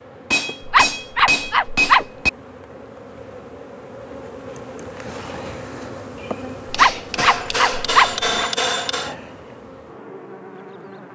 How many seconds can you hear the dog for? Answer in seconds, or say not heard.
3 s.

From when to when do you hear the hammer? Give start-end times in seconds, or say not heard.
0.3-2.3, 6.7-9.2.